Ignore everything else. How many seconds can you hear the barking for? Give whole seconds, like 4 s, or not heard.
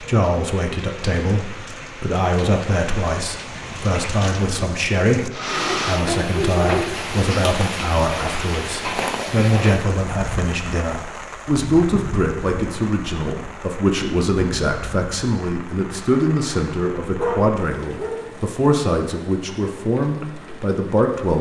3 s.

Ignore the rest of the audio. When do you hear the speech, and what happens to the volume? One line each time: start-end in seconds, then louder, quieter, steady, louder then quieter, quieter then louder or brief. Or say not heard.
0.0-21.3 steady.